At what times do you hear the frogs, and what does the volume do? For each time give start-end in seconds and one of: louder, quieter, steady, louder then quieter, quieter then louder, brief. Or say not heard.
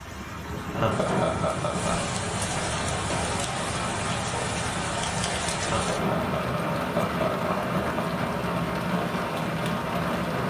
not heard.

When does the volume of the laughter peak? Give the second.
1 s.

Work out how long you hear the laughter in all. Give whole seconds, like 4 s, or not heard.
4 s.